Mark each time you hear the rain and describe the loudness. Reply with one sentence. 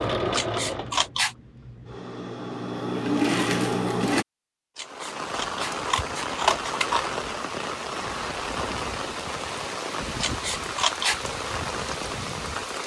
The rain can be heard from 4.8 to 12.8 s, at a steady volume.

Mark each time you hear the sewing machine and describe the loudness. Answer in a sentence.
The sewing machine can be heard from 0.0 to 4.2 s, getting quieter then louder.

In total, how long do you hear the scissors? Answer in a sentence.
You can hear the scissors for 4 seconds altogether.